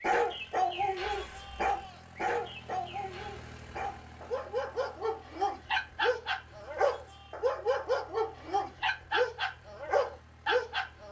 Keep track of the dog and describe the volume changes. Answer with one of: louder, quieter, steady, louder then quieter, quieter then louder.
quieter then louder.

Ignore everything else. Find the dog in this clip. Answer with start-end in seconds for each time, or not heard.
0.0-11.0.